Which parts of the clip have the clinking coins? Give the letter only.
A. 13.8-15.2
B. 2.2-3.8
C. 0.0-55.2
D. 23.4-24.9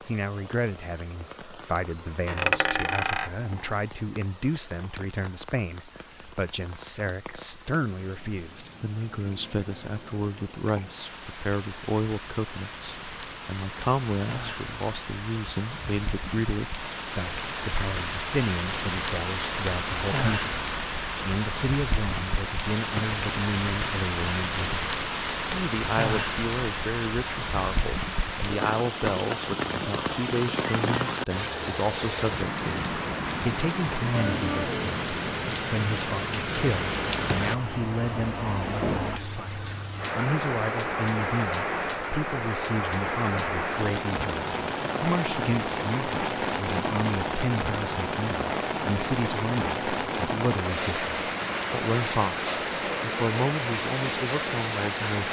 B.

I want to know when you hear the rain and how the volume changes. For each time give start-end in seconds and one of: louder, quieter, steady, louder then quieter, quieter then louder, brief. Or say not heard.
0.0-55.2 louder.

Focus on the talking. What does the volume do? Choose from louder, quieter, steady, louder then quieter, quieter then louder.
steady.